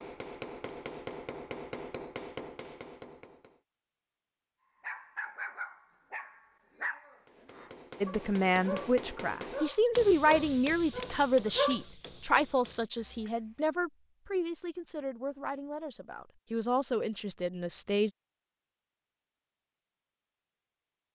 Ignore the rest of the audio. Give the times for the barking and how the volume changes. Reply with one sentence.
You can hear the barking from 4.8 to 11.8 s, at a steady volume.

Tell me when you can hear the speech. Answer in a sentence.
The speech can be heard from 8.0 to 18.1 s.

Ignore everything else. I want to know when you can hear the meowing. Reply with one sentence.
The meowing can't be heard in this clip.